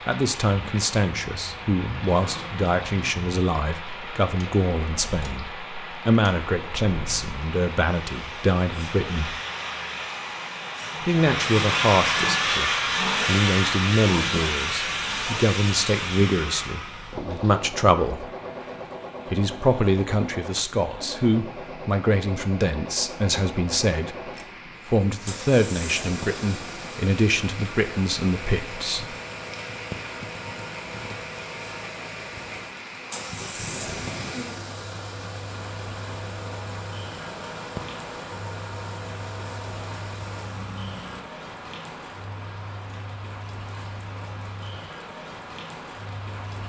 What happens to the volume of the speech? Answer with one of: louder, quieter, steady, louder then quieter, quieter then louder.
steady.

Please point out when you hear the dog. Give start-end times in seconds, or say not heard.
not heard.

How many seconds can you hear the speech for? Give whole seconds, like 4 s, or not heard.
26 s.